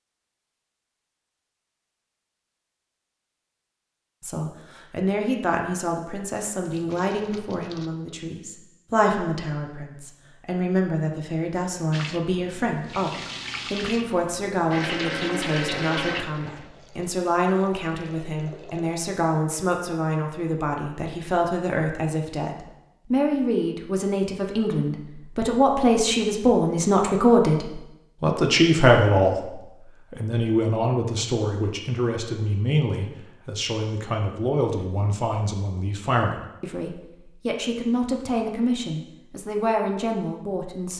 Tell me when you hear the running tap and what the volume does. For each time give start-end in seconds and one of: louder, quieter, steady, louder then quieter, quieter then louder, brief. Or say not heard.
11.9-19.0 louder then quieter.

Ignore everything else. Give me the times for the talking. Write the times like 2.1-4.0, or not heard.
4.2-40.9.